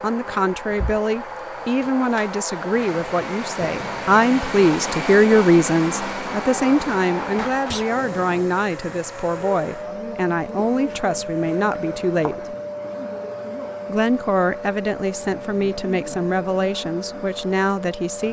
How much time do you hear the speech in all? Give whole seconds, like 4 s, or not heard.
17 s.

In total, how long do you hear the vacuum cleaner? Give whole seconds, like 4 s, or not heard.
18 s.